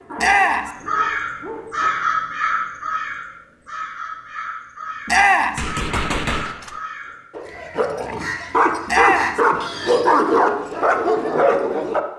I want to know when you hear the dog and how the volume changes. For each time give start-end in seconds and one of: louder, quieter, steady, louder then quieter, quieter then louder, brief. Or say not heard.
0.0-1.9 brief
7.3-12.0 louder.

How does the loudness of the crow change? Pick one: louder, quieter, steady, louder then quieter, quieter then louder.
quieter.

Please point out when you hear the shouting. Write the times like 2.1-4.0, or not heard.
0.1-0.7, 5.0-5.6, 8.8-9.4.